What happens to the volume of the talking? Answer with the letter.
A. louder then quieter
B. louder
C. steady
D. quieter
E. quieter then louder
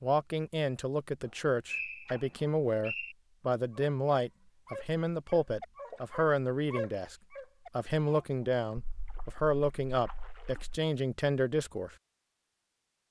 C.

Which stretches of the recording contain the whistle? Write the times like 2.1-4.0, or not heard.
1.2-3.1.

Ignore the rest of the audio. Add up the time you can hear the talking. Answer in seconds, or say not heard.
11 s.